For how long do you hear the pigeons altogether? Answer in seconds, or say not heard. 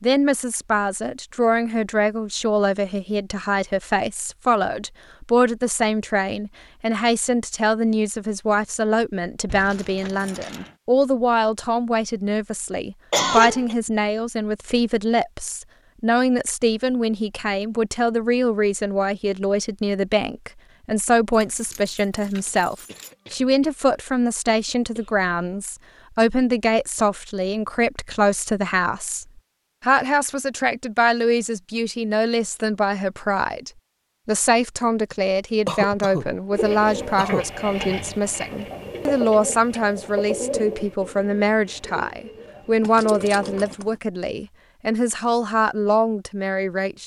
7 s.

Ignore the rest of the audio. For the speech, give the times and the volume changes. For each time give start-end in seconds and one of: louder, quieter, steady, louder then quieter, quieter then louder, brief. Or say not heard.
0.0-47.0 steady.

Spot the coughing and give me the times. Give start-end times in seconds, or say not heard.
13.1-13.8, 22.9-23.8, 24.4-25.1, 35.6-37.5.